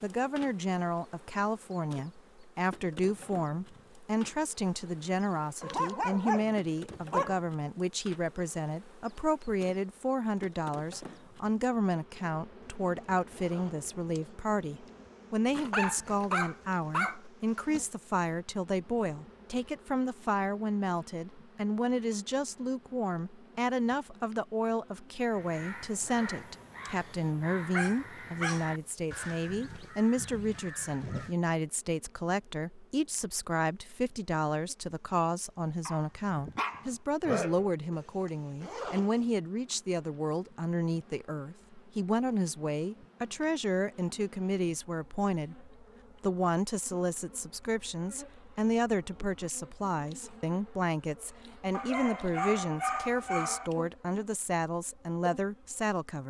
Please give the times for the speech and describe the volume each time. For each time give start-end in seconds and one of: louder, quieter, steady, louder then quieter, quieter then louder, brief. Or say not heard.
0.0-56.2 steady.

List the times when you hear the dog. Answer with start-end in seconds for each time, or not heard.
5.6-7.4, 15.5-17.2, 27.7-28.7, 35.9-37.7, 51.7-53.7.